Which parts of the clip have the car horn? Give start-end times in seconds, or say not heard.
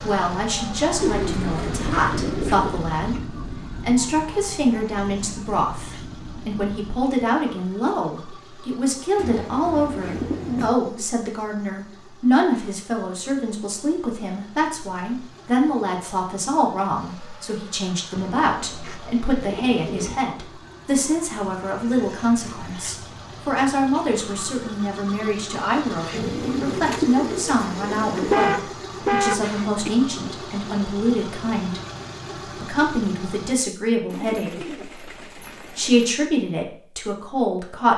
28.1-29.9.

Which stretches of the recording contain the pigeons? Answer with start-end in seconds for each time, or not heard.
0.9-2.9, 9.2-10.8, 18.1-20.1, 26.1-28.5, 34.0-36.1.